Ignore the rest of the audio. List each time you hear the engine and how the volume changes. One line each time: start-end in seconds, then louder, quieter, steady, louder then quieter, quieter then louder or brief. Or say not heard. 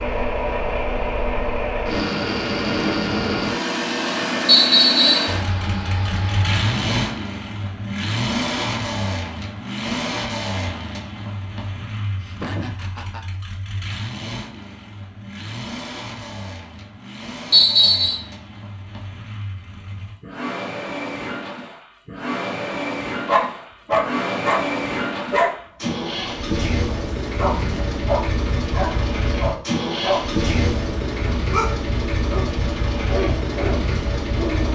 0.0-34.7 quieter then louder.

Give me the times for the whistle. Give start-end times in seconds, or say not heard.
4.5-5.3, 17.5-18.2.